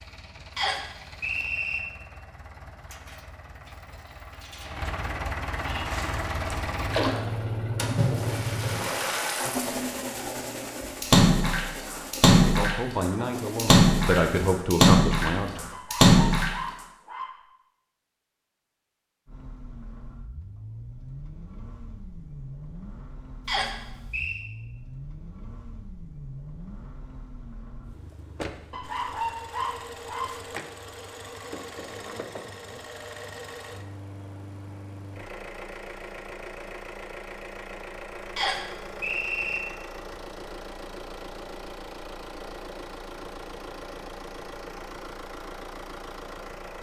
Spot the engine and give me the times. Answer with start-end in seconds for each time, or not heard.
0.0-14.5, 19.2-46.7.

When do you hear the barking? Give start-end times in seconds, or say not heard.
15.7-17.4, 28.7-30.4.